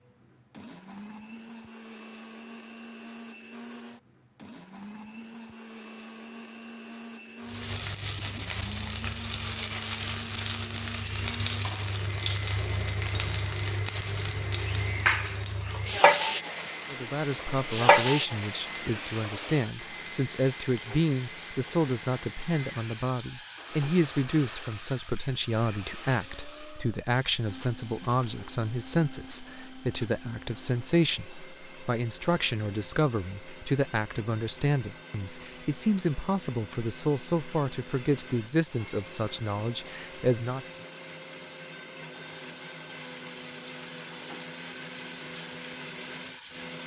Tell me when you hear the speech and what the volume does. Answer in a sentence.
You can hear the speech from 16.9 to 40.8 s, at a steady volume.